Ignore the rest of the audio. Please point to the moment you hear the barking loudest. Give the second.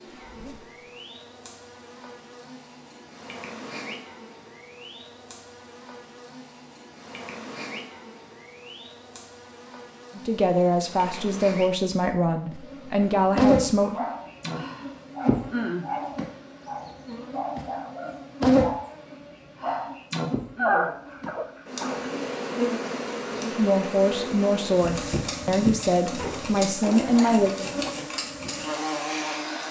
21 s.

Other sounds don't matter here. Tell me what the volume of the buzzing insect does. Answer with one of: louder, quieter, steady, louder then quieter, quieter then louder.
louder.